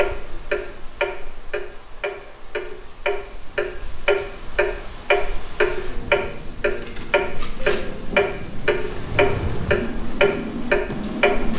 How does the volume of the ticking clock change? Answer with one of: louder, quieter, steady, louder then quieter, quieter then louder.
louder.